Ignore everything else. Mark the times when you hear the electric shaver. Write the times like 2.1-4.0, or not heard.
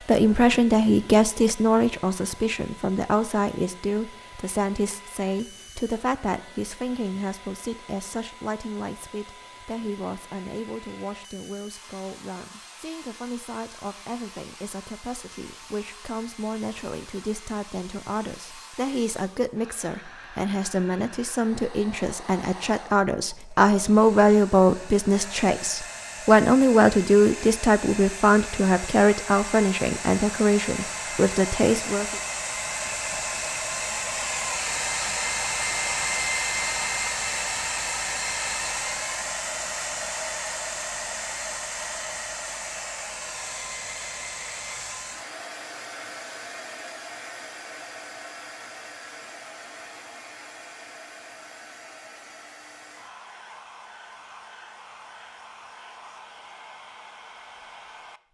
not heard.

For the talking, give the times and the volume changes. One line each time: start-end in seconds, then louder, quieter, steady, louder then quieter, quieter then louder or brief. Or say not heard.
0.1-32.2 quieter then louder.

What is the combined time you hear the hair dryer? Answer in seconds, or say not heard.
58 s.